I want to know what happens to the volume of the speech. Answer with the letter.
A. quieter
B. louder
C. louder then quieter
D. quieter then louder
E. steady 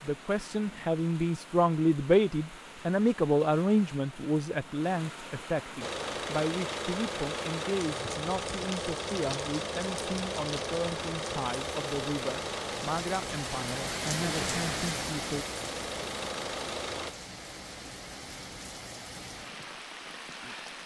A.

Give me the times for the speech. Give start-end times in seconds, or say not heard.
0.0-15.4.